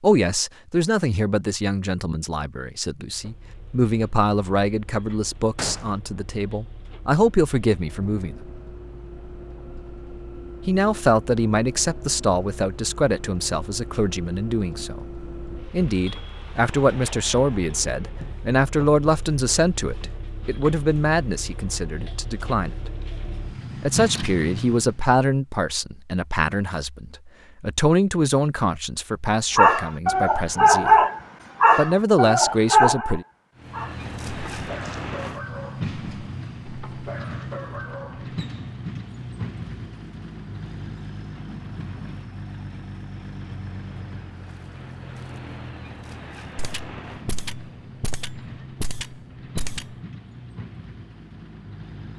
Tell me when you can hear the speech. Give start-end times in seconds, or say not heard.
0.0-8.3, 10.7-22.9, 23.8-31.1, 31.8-33.2.